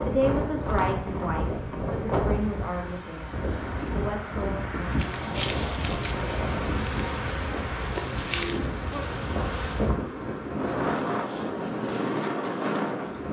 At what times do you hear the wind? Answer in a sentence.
You can hear the wind from 0.0 to 13.2 s.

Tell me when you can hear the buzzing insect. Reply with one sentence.
You can hear the buzzing insect from 4.9 to 9.9 s.